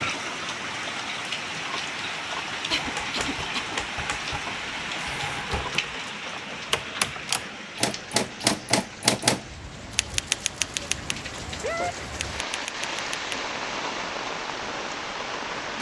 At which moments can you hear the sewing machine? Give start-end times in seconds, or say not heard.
not heard.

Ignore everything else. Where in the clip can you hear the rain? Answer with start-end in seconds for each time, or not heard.
0.0-15.7.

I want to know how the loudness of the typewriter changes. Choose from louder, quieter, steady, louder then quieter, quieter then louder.
louder then quieter.